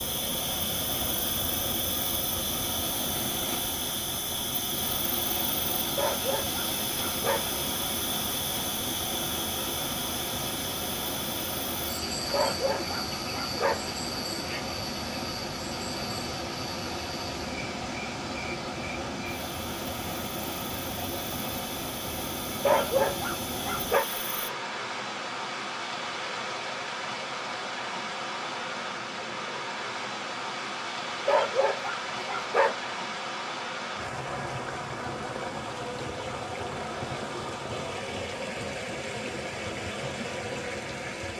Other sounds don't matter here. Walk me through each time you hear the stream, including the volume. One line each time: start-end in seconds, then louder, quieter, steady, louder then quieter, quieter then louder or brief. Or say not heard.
0.0-41.3 steady.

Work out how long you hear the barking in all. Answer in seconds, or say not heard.
7 s.